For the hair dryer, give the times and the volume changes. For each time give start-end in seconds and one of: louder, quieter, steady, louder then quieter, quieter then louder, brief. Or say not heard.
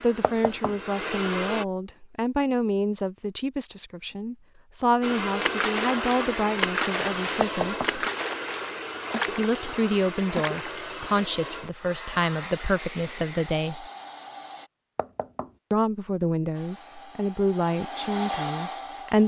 0.0-1.6 brief
5.0-14.7 quieter
16.5-19.2 brief.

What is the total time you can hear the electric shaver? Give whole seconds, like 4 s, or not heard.
not heard.